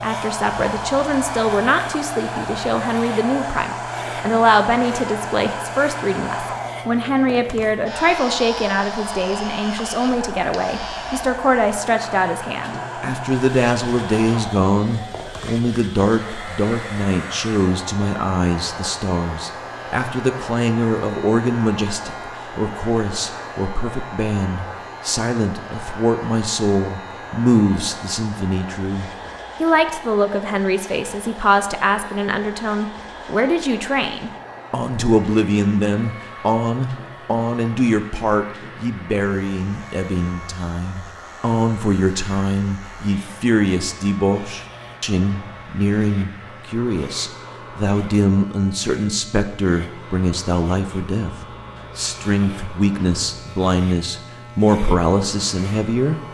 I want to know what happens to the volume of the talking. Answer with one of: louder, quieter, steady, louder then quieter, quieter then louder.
steady.